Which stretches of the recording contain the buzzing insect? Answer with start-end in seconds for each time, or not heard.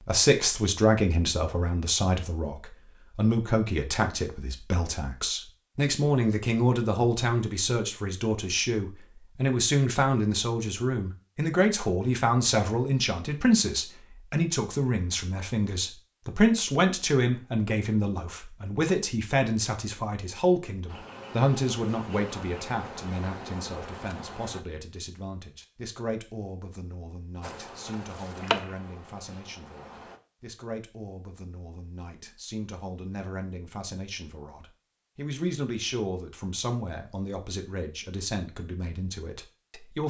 20.9-24.6, 27.4-30.2.